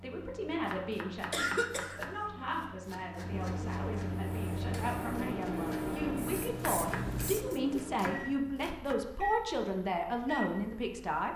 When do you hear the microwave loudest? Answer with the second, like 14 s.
6 s.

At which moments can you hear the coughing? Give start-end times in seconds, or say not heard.
1.3-2.0.